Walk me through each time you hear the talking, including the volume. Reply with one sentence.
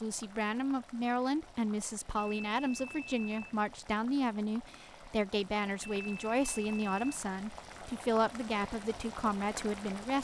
You can hear the talking from 0.0 to 10.2 s, at a steady volume.